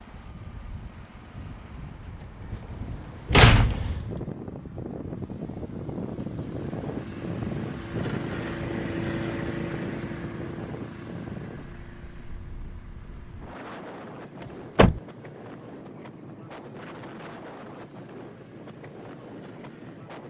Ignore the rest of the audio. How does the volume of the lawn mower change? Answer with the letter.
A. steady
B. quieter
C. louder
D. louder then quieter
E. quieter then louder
D.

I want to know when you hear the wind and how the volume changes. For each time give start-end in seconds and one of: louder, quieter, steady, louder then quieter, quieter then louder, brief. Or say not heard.
0.0-20.2 louder then quieter.